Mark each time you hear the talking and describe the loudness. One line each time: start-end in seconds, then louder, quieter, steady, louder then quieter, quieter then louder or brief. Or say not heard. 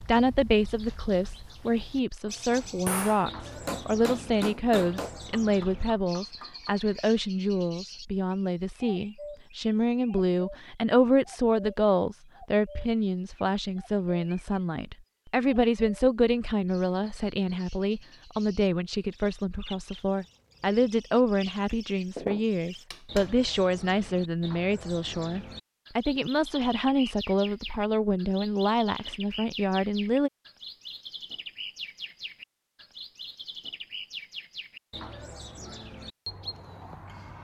0.1-30.3 steady.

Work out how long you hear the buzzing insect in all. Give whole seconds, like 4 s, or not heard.
not heard.